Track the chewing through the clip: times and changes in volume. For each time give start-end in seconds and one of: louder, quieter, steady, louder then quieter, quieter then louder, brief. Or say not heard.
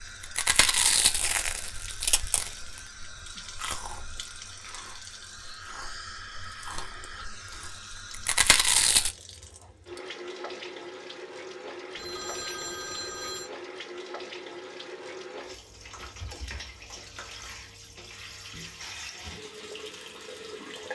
0.0-9.2 quieter then louder.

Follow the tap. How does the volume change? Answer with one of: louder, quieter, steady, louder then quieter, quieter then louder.
steady.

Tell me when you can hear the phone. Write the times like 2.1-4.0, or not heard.
11.9-13.5.